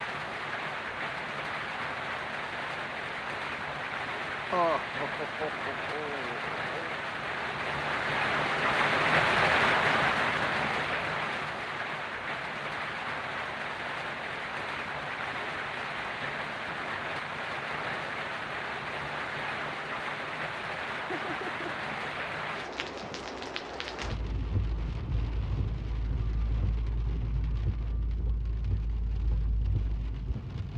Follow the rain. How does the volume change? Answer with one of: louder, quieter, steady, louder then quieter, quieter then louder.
louder then quieter.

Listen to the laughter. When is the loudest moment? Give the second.
5 s.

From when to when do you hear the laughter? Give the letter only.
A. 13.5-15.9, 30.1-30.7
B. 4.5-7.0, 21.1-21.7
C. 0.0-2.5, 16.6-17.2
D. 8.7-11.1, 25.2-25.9
B.